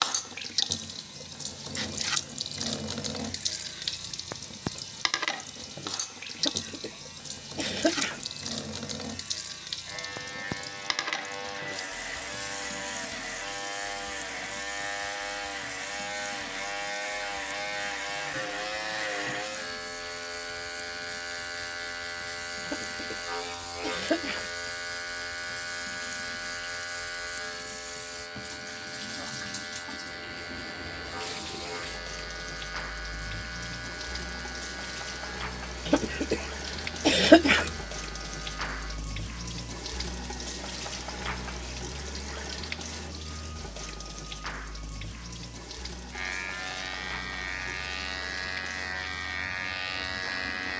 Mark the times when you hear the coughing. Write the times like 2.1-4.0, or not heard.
6.3-7.0, 7.5-8.2, 22.6-24.5, 35.9-36.5, 37.0-37.7.